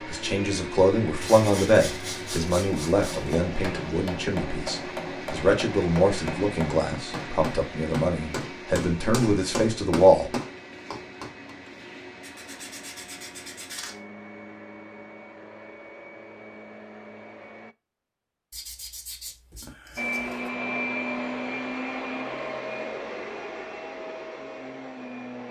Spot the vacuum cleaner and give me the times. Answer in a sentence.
The vacuum cleaner can be heard from 0.0 to 17.8 s and from 19.9 to 25.4 s.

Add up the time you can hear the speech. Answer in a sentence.
You can hear the speech for 10 seconds altogether.